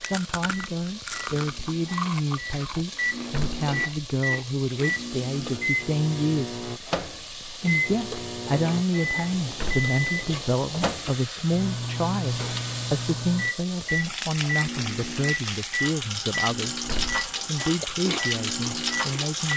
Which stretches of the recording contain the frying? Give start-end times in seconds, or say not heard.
0.0-19.5.